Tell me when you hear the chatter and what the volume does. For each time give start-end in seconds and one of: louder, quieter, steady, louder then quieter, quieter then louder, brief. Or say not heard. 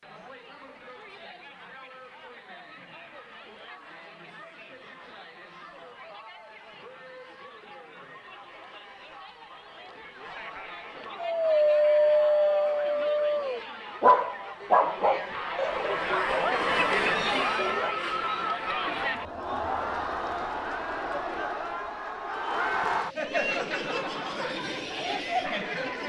0.0-26.0 louder.